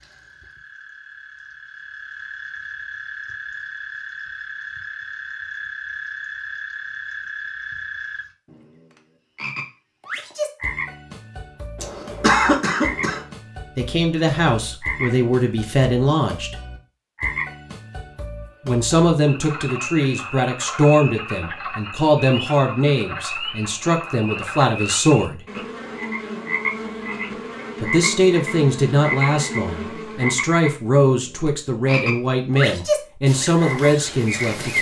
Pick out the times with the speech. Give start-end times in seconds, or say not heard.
13.8-16.6, 18.6-25.4, 27.8-34.7.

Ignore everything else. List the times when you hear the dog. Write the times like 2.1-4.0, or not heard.
not heard.